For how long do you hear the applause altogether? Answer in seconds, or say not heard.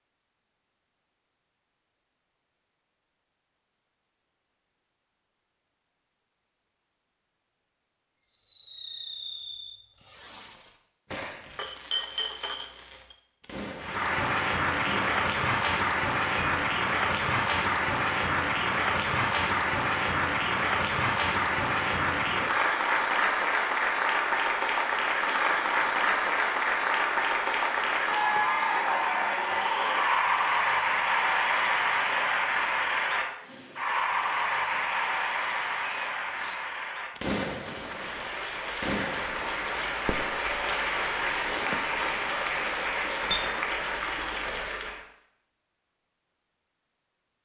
31 s.